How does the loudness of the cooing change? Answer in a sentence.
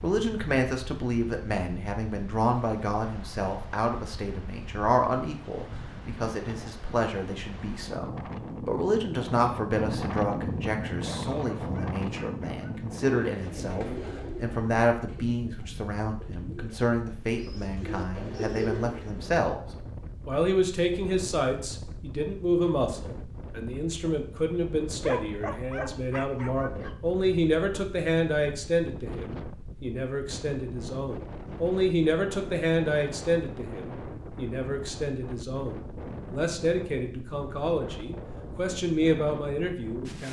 The loudness of the cooing goes down, then up.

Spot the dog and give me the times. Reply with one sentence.
You can hear the dog from 10.9 to 12.7 s and from 24.9 to 26.9 s.